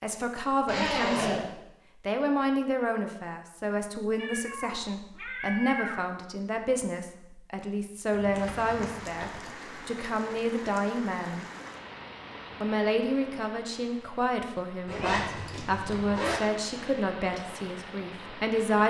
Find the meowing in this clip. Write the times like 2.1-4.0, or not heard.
4.2-6.0, 14.9-15.7.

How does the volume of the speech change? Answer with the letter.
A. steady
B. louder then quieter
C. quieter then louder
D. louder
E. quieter
A.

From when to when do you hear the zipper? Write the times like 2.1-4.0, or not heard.
0.7-1.4, 8.1-9.4, 14.8-16.4.